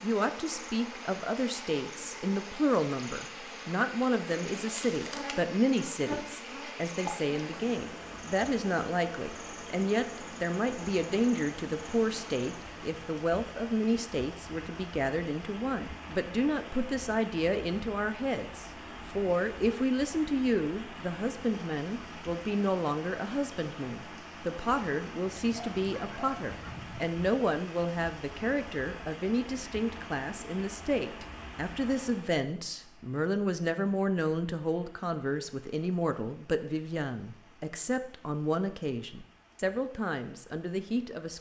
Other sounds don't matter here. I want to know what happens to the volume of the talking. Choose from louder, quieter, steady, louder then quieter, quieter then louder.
steady.